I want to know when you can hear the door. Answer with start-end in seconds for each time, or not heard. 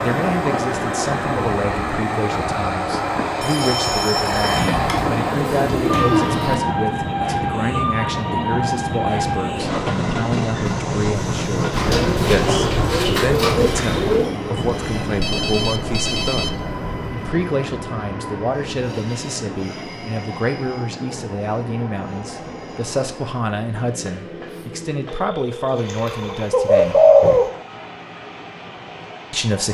not heard.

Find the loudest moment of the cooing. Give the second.
27 s.